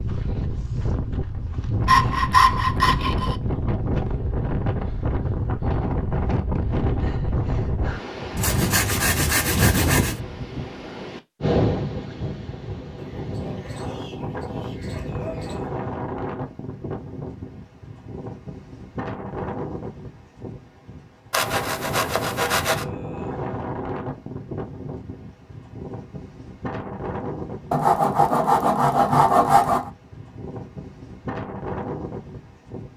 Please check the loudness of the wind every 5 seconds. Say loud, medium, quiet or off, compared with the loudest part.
loud, loud, loud, medium, medium, medium, medium.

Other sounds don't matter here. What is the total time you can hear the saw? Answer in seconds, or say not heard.
7 s.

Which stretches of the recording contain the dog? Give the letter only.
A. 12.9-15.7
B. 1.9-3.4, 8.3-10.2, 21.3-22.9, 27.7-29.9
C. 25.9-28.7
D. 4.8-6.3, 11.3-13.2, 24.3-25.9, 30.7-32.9
A.